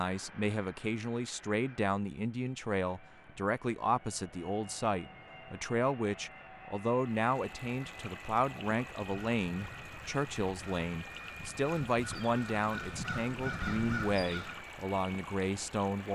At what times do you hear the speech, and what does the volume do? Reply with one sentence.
You can hear the speech from 0.0 to 16.1 s, at a steady volume.